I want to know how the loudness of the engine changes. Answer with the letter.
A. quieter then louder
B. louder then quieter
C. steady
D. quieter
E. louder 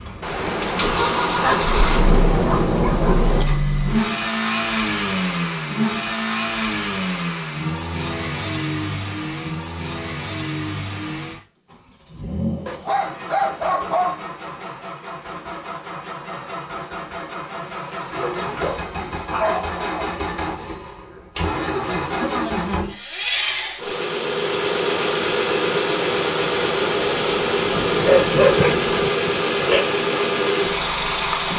A.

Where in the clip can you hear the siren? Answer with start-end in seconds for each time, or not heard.
not heard.